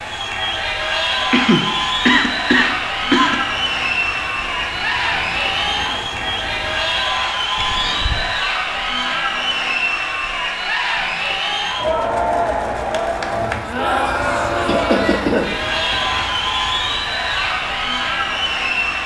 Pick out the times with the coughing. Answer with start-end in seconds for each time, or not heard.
1.3-3.4, 7.5-8.3, 14.7-15.5.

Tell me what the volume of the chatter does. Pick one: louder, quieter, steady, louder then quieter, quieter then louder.
steady.